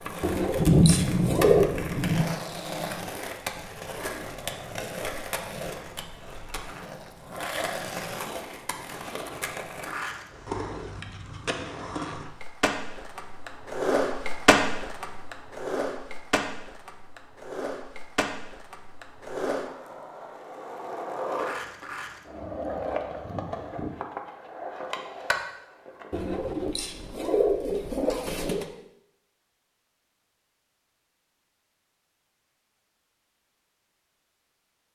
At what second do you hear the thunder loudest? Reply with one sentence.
The loudest moment of the thunder is at 1 second.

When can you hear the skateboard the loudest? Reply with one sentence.
The volume of the skateboard peaks at 14 seconds.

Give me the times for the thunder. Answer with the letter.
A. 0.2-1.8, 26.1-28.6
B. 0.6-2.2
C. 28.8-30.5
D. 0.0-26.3
B.